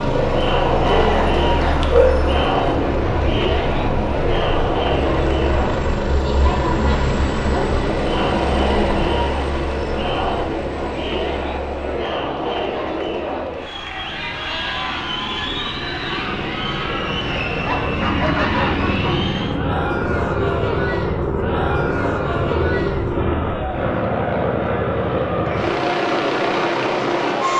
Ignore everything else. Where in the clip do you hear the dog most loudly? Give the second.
2 s.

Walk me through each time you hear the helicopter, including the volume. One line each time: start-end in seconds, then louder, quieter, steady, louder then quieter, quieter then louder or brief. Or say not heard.
0.0-27.5 quieter then louder.